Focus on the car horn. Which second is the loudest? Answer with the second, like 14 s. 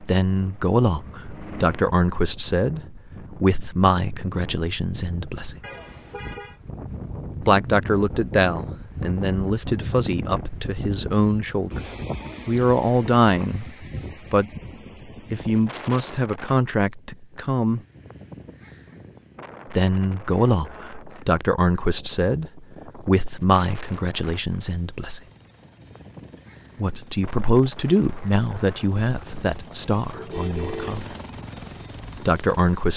31 s.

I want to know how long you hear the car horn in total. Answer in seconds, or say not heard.
2 s.